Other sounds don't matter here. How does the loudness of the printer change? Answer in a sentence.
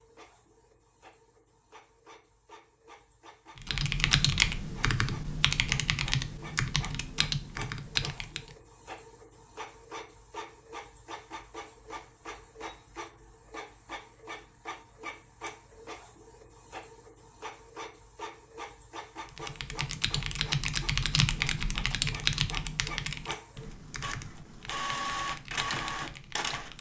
The loudness of the printer goes up.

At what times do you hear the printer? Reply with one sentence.
The printer can be heard from 0.0 to 26.7 s.